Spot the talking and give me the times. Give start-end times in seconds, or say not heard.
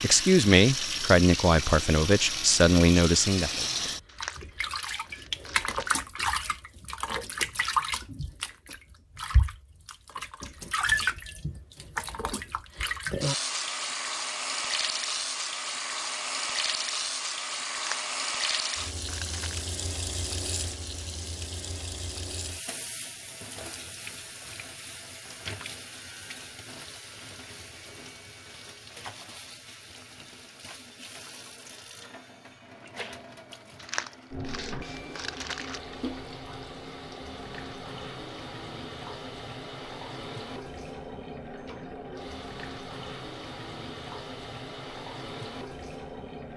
0.0-3.6.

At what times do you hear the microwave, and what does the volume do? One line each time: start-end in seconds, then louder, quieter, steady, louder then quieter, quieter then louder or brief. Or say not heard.
not heard.